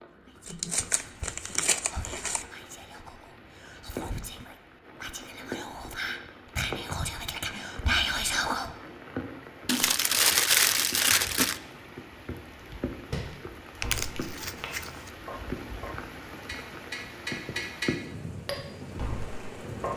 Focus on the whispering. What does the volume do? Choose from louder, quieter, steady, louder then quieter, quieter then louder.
louder.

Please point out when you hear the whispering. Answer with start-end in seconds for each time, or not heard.
0.2-8.7.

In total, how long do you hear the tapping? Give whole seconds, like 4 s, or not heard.
7 s.